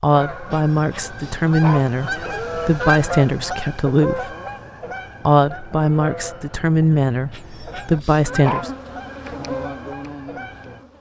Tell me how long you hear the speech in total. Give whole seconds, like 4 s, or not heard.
8 s.